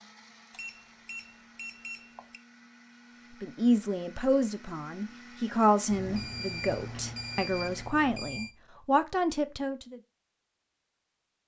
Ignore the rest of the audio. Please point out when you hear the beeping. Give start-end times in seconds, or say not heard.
0.5-2.4, 5.9-8.6.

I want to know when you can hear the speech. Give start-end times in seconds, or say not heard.
3.4-10.0.